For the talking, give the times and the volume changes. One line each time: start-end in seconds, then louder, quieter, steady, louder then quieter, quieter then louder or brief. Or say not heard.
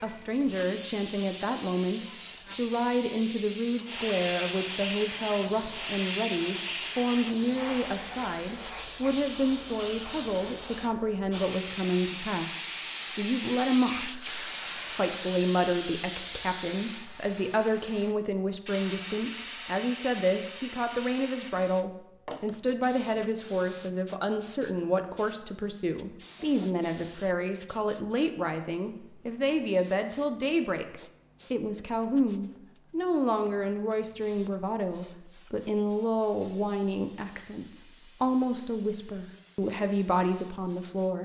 0.0-41.2 steady.